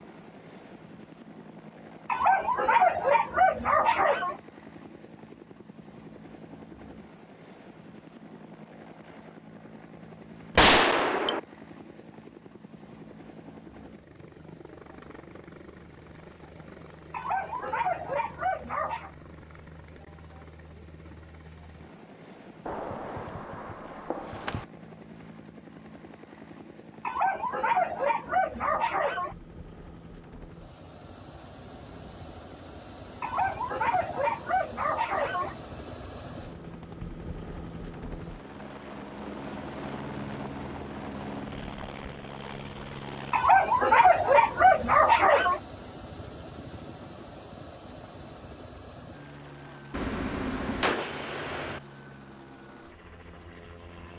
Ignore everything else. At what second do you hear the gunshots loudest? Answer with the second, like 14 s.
11 s.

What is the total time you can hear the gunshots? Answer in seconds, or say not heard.
5 s.